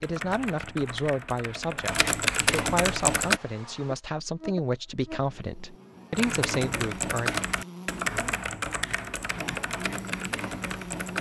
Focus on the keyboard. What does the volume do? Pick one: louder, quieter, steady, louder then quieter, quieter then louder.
louder then quieter.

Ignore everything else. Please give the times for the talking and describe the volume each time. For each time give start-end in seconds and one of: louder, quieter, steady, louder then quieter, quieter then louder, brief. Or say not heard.
0.0-7.4 steady.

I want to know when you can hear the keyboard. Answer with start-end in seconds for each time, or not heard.
0.0-3.4, 6.1-11.1.